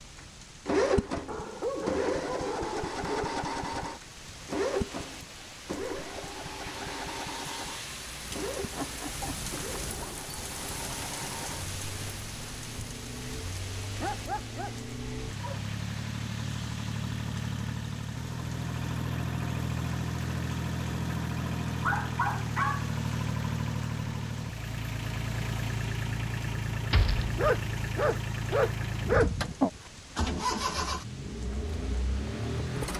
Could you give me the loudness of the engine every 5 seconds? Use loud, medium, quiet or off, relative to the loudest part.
loud, medium, quiet, loud, loud, loud, loud.